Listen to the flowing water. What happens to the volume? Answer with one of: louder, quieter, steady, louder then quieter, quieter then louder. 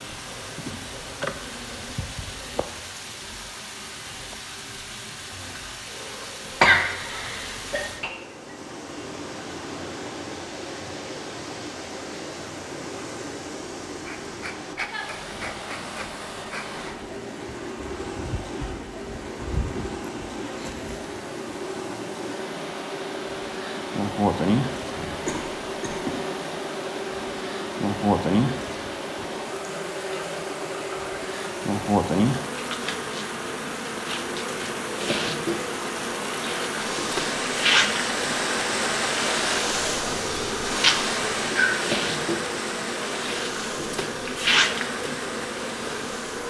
louder.